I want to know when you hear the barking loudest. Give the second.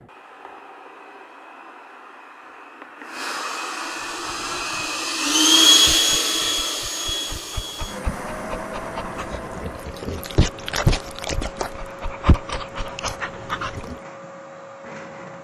11 s.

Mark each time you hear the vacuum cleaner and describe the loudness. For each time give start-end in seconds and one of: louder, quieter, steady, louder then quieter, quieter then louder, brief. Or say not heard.
0.0-15.3 louder then quieter.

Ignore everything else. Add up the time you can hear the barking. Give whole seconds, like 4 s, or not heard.
10 s.